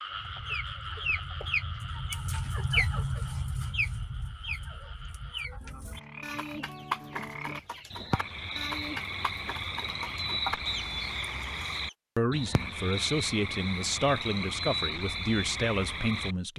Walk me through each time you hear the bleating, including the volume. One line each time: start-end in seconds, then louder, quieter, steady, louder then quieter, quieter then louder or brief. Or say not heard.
not heard.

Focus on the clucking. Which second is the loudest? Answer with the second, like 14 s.
3 s.